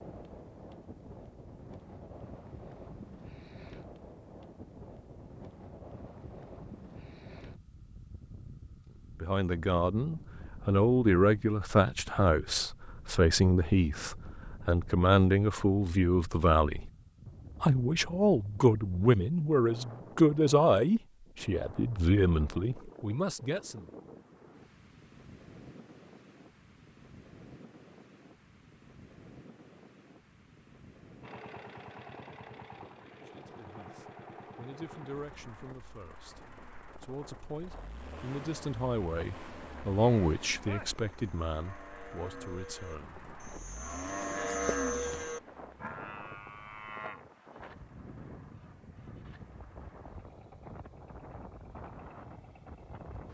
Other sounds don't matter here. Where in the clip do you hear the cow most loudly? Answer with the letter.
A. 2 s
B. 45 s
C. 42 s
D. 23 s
B.